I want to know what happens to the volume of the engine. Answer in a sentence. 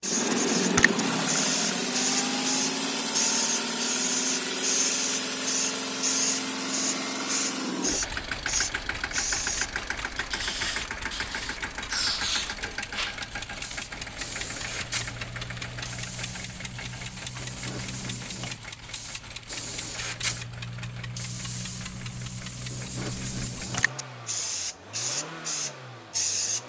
The volume of the engine goes down.